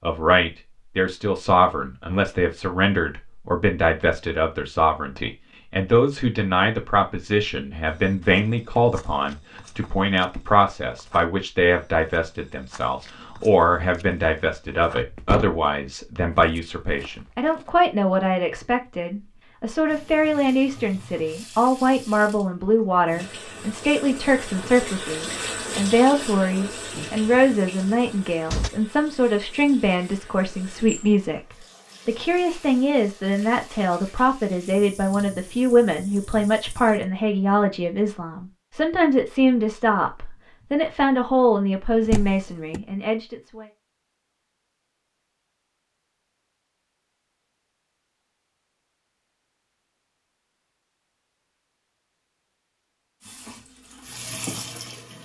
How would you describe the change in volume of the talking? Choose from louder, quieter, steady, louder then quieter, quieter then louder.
steady.